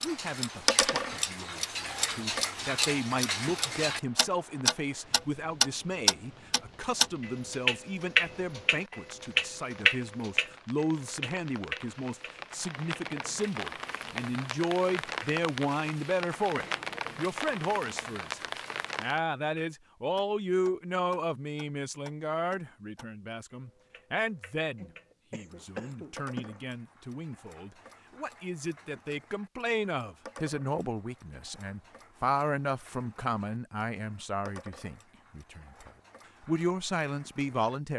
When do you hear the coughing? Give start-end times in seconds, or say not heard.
24.8-26.6.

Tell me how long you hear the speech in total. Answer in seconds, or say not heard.
38 s.